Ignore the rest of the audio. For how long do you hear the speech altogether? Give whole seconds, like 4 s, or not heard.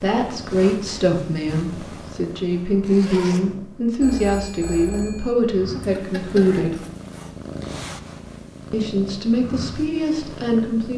9 s.